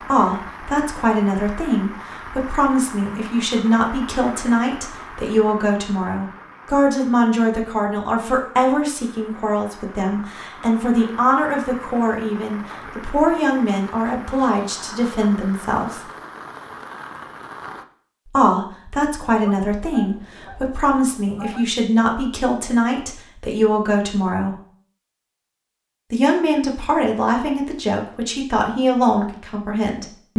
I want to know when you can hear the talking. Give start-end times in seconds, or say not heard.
0.1-16.1, 18.2-24.6, 26.1-30.3.